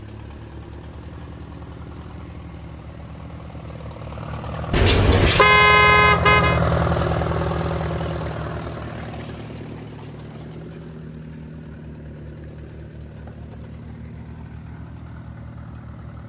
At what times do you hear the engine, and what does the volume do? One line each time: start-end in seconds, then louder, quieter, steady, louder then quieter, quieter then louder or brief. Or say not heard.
0.0-16.2 louder then quieter.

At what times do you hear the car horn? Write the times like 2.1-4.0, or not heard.
4.7-6.6.